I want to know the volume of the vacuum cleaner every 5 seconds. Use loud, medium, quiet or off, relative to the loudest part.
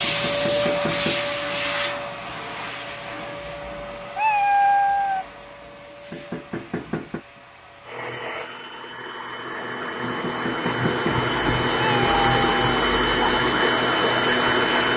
medium, quiet, loud.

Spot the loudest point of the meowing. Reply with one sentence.
The loudest moment of the meowing is at 5 seconds.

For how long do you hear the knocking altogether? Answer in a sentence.
You can hear the knocking for 4 seconds altogether.